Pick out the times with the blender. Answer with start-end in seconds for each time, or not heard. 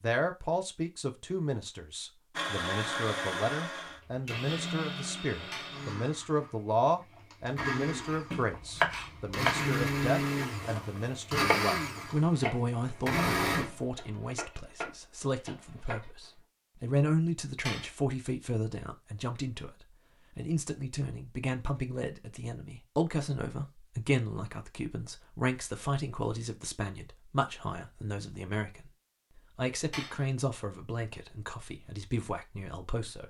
2.4-13.8.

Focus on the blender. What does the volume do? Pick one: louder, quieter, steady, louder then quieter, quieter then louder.
quieter then louder.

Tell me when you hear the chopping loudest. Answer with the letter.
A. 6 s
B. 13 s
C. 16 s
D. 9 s
D.